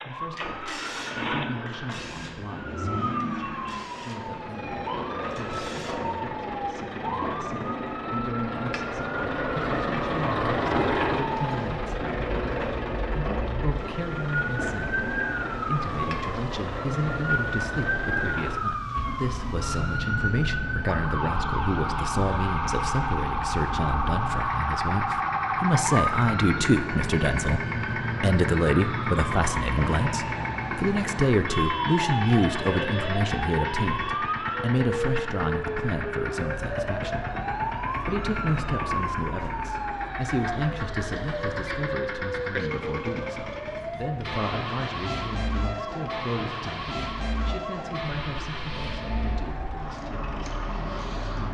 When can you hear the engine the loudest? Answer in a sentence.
The loudest moment of the engine is at 11 seconds.